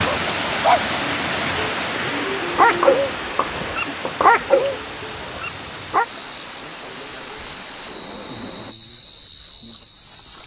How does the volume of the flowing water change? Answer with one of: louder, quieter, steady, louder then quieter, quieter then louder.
quieter.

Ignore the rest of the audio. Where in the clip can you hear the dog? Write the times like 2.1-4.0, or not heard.
0.0-6.0.